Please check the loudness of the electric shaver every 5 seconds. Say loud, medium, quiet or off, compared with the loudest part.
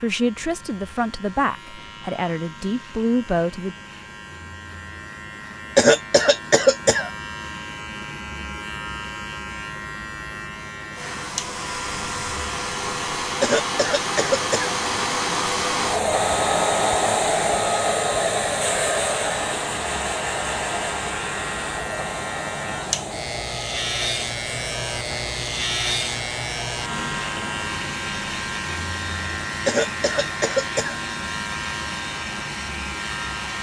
quiet, medium, medium, medium, loud, loud, loud.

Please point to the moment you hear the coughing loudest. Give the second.
6 s.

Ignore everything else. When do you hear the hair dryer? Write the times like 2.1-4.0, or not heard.
10.9-33.5.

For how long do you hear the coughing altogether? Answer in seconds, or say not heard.
4 s.